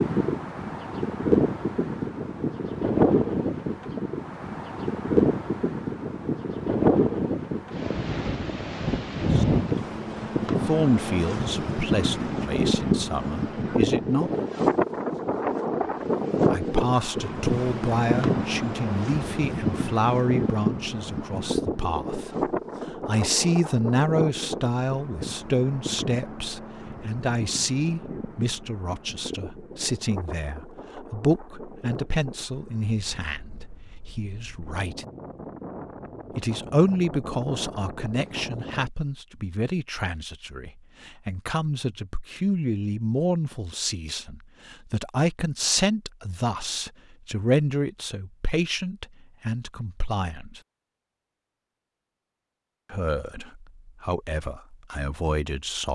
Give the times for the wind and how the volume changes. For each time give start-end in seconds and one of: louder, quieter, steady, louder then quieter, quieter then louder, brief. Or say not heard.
0.0-38.9 quieter.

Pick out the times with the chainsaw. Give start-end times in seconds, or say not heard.
not heard.